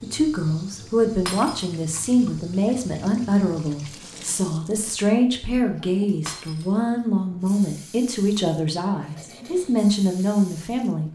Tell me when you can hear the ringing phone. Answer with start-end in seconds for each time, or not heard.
not heard.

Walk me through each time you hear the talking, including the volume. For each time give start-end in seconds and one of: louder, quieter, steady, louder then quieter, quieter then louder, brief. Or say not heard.
0.0-11.0 steady.